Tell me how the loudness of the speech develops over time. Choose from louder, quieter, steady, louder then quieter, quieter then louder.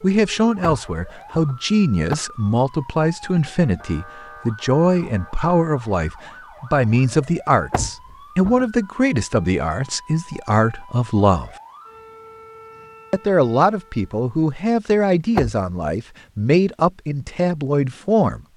steady.